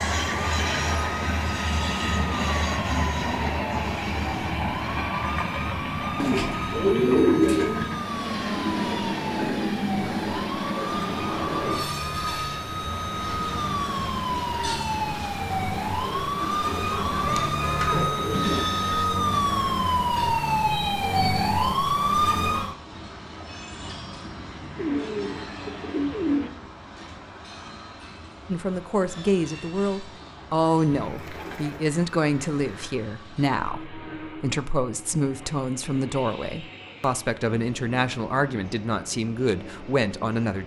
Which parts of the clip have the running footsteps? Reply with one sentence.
The running footsteps can't be heard in this clip.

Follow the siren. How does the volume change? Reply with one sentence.
The loudness of the siren goes up.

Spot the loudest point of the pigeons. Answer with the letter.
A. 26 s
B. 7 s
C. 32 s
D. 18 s
B.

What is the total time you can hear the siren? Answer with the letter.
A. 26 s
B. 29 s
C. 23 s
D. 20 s
C.